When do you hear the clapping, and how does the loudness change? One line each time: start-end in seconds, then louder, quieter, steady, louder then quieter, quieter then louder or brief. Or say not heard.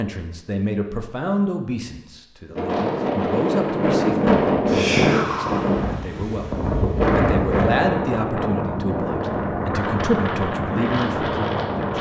not heard.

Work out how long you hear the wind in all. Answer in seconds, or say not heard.
9 s.